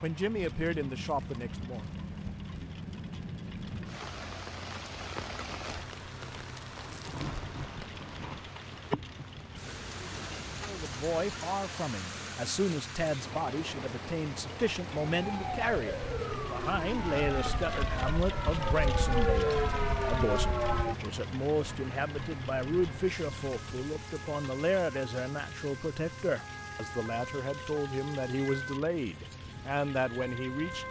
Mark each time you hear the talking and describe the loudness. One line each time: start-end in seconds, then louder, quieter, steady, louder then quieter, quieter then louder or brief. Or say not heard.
0.0-1.9 brief
10.6-30.8 steady.